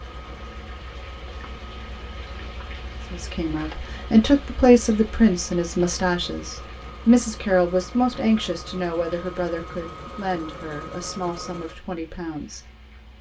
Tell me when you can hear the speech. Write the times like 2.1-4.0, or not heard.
3.1-12.7.